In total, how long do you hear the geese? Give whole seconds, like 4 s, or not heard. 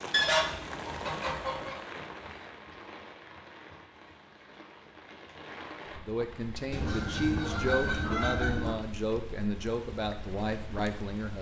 4 s.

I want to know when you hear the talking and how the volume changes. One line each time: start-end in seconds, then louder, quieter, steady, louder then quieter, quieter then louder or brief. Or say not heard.
6.0-11.3 steady.